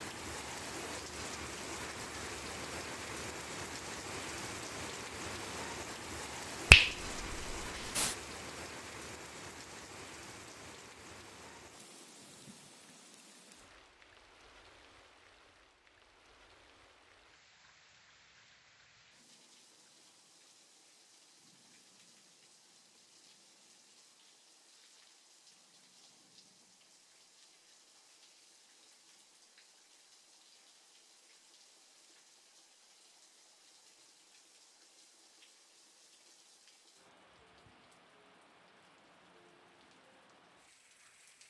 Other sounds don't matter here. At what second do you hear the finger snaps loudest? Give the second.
7 s.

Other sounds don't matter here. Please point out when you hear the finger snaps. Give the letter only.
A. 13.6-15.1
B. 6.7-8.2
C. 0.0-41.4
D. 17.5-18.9
B.